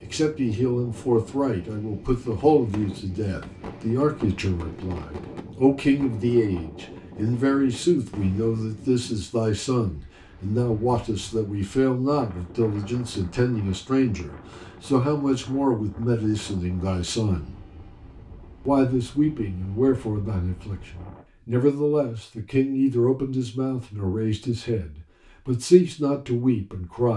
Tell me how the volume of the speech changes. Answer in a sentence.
The loudness of the speech stays about the same.